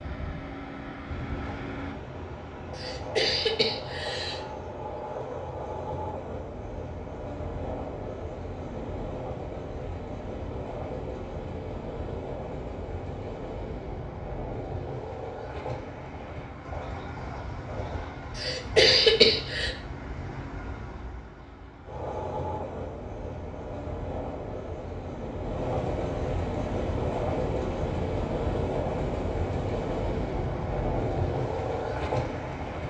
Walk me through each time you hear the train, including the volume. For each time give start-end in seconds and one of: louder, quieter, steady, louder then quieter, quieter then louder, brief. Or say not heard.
0.0-32.8 louder.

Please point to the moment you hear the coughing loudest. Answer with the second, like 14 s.
19 s.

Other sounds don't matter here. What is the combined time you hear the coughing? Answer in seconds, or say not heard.
3 s.